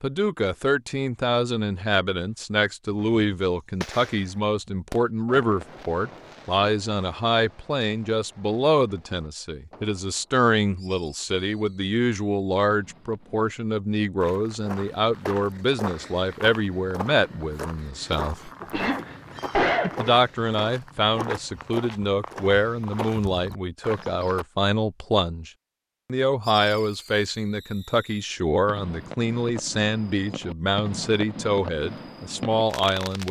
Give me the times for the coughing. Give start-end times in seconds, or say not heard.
18.6-20.1.